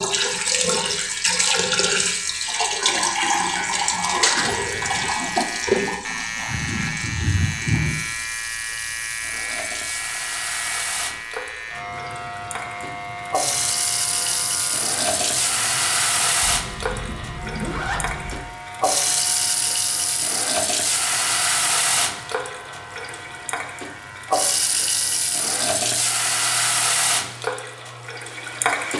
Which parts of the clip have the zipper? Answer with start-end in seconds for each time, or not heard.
4.5-5.3, 16.4-18.4.